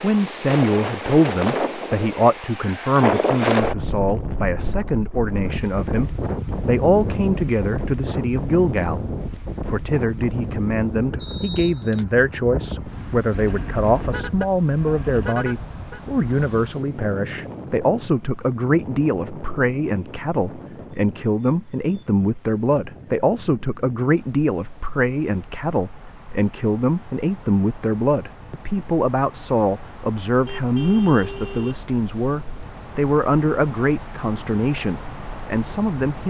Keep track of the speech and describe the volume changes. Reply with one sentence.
The loudness of the speech stays about the same.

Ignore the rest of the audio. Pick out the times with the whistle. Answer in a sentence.
The whistle can be heard from 11.2 to 12.1 s.